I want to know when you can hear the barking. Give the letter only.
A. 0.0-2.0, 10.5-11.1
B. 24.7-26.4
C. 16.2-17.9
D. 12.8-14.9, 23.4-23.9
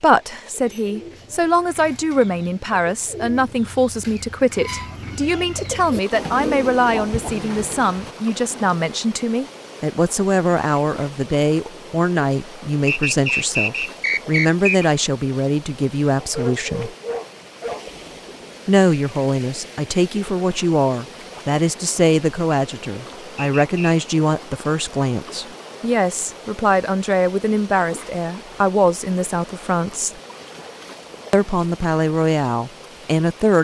C.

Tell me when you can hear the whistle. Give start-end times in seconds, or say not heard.
12.8-14.9, 23.4-23.9.